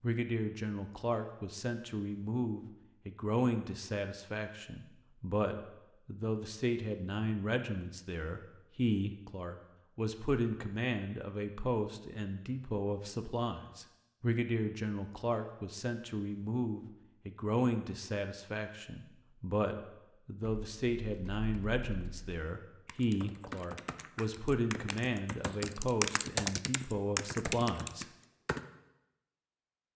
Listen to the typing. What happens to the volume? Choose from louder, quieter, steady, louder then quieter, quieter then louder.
louder.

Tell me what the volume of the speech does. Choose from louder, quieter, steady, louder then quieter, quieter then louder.
steady.